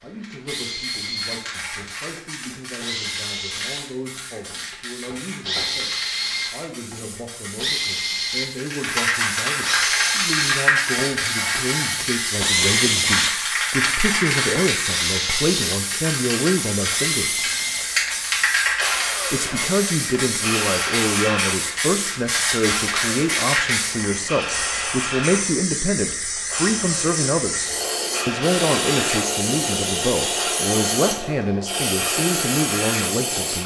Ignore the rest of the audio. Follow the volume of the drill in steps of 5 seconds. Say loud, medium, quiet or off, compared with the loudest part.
medium, loud, loud, medium, medium, medium, medium.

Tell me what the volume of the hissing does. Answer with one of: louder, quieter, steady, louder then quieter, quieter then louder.
louder.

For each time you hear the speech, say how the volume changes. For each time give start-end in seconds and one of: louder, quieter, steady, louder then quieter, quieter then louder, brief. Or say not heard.
0.0-17.4 louder
19.3-33.6 steady.